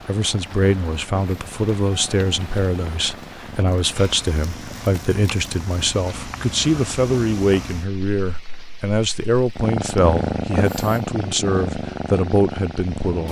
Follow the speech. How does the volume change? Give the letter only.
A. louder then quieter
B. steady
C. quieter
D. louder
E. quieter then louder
B.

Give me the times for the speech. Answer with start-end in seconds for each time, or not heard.
0.1-13.2.